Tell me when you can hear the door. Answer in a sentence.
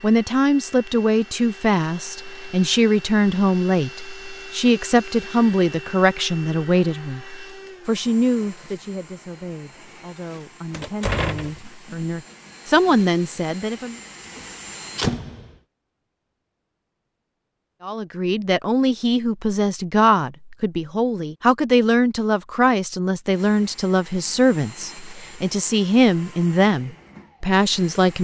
You can hear the door from 10.7 to 11.6 s and from 14.3 to 15.6 s.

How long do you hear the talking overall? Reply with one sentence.
You can hear the talking for 24 seconds altogether.